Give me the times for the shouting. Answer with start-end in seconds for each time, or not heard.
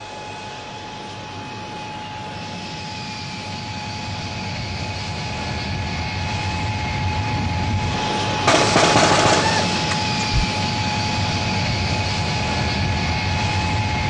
not heard.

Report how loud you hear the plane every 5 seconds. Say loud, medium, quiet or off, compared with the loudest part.
medium, loud, loud.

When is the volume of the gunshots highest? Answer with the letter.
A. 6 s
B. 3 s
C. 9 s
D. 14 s
C.